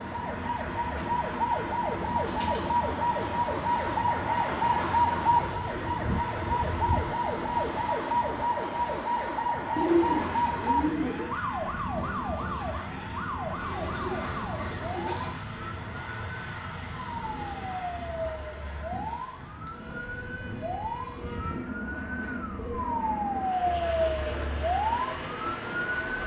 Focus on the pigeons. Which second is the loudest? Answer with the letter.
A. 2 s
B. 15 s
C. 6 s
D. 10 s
D.